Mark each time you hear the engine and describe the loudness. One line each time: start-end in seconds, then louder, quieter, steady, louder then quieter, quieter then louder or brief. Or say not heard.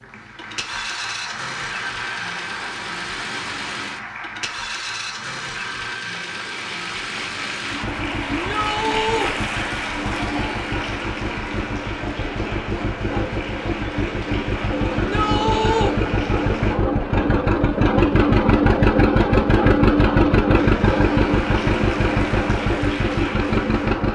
0.0-24.1 louder.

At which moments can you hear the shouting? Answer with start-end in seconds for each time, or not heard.
8.3-9.3, 14.9-15.9.